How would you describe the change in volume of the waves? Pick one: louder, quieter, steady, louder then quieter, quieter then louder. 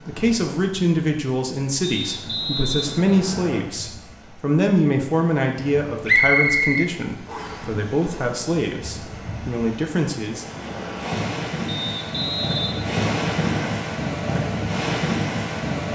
louder.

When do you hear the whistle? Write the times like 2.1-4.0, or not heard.
1.8-3.6, 6.0-7.7, 11.7-13.7.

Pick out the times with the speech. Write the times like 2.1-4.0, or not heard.
0.1-10.4.